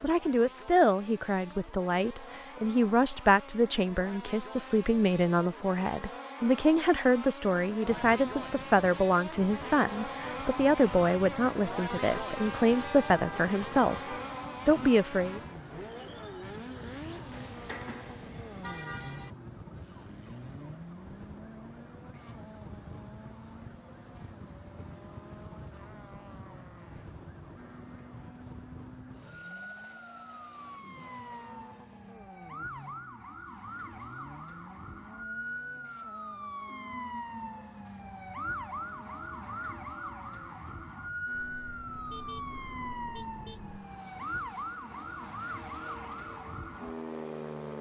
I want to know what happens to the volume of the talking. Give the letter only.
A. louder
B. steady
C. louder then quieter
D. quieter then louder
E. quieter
B.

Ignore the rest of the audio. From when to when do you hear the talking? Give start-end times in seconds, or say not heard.
0.0-15.4.